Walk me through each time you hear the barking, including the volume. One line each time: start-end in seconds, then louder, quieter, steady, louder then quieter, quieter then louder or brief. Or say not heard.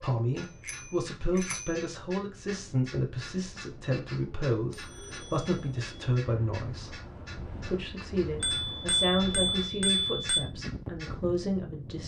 not heard.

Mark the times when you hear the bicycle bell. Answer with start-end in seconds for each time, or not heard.
0.7-1.8, 4.7-6.2, 8.4-10.4.